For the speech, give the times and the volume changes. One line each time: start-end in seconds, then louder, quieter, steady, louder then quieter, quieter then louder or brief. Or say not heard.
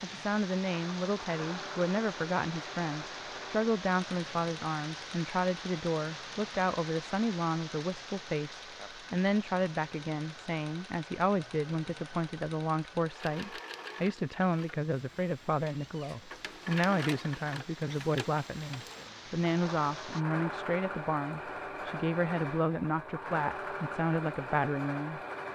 0.0-25.2 steady.